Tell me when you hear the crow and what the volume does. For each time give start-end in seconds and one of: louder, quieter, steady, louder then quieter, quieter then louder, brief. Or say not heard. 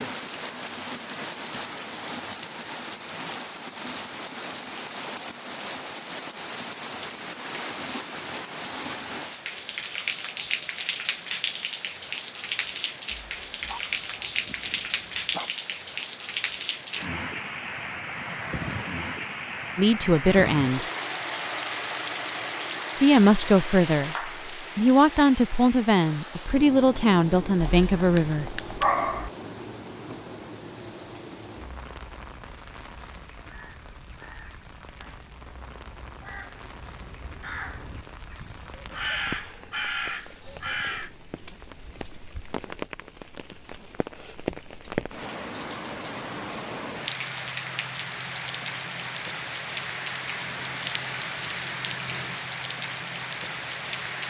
33.5-41.1 louder.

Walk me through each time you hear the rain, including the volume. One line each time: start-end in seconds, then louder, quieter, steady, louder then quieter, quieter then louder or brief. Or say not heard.
0.0-54.2 quieter then louder.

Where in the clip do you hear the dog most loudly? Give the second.
29 s.